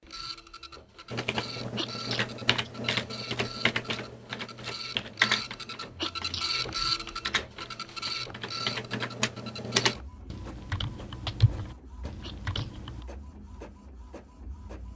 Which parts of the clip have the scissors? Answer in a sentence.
The scissors can't be heard in this clip.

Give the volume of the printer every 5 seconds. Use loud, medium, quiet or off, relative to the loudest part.
medium, loud, quiet.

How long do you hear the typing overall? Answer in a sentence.
The typing can be heard for 12 seconds in total.